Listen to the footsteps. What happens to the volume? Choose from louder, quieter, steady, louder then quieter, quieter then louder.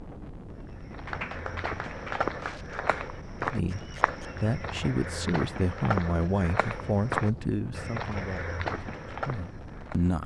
steady.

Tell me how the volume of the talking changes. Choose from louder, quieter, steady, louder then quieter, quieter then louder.
quieter.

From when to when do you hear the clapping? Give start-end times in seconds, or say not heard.
1.1-3.0.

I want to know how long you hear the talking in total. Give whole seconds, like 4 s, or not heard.
7 s.